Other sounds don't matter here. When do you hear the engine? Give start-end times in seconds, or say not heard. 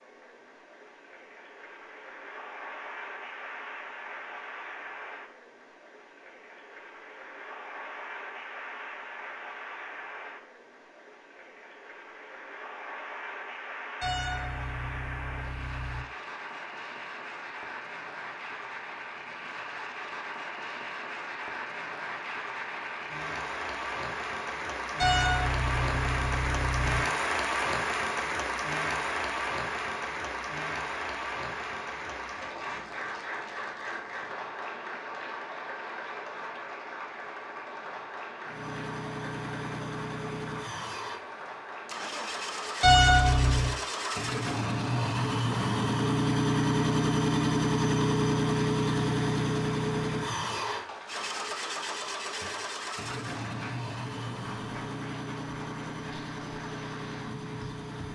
38.5-58.1.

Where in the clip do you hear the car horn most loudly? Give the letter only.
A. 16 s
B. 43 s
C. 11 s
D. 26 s
B.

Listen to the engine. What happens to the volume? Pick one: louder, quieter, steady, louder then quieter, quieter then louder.
louder then quieter.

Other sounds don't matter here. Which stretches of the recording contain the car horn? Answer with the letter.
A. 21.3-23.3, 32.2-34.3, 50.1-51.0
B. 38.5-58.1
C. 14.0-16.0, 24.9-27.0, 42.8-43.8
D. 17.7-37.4
C.